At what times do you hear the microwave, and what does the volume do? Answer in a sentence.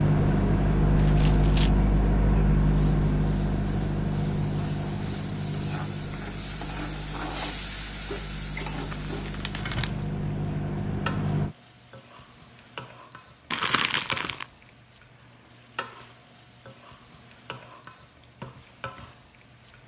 You can hear the microwave from 0.0 to 11.6 s, getting quieter then louder.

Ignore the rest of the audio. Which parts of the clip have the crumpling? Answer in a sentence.
The crumpling can be heard from 0.9 to 1.7 s, from 8.9 to 9.9 s and from 13.5 to 14.4 s.